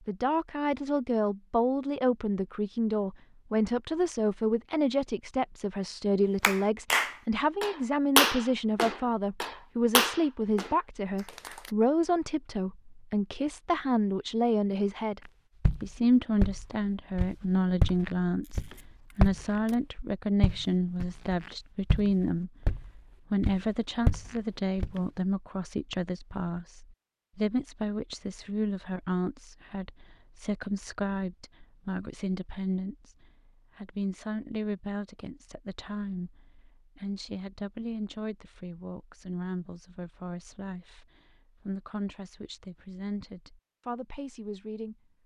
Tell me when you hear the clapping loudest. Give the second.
8 s.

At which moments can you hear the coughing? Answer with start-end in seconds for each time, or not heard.
not heard.